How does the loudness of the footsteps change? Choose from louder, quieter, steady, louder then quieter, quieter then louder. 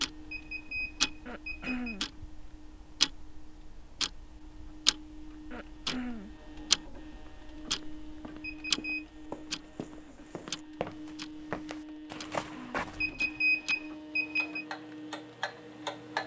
louder.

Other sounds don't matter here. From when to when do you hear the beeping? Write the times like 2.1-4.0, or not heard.
0.1-2.0, 8.3-9.1, 12.8-14.7.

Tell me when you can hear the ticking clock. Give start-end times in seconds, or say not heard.
0.0-16.2.